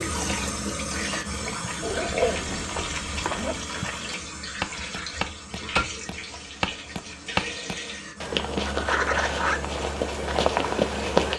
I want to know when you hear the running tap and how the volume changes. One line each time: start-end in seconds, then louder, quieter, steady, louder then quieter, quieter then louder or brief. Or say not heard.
0.0-11.3 quieter.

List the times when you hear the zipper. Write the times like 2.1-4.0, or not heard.
1.8-3.6, 8.6-9.6.